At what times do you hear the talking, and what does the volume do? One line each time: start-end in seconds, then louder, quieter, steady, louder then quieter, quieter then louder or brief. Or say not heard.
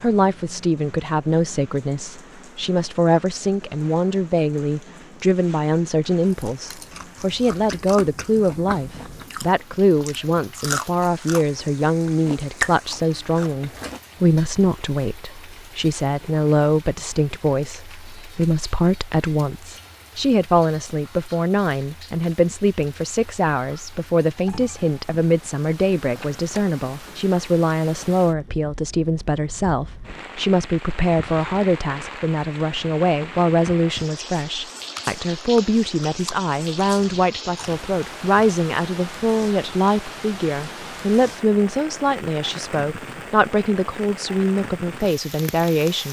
0.0-46.0 steady.